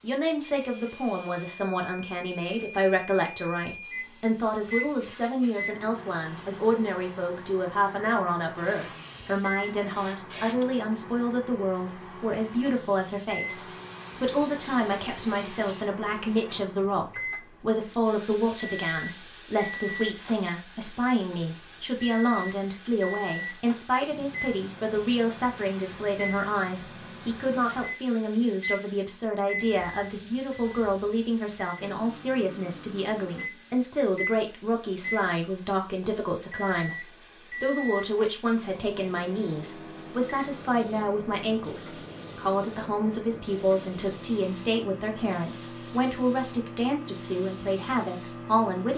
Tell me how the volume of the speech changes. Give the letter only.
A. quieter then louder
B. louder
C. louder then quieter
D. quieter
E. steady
E.